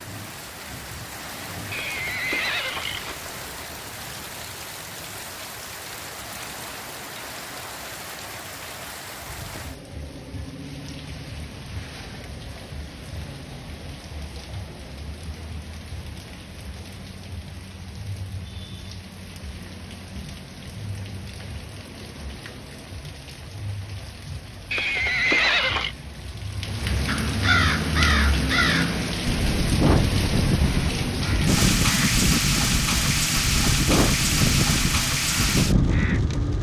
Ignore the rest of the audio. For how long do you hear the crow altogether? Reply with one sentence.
The crow can be heard for 9 seconds in total.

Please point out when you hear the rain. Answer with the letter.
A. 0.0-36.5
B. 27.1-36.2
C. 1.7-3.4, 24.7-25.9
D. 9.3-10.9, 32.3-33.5
A.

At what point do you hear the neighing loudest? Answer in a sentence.
The volume of the neighing peaks at 25 seconds.